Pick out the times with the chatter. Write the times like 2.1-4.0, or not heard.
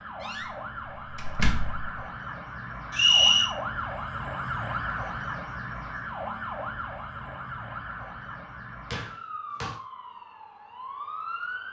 not heard.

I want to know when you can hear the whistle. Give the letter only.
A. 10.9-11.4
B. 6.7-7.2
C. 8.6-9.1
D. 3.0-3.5
D.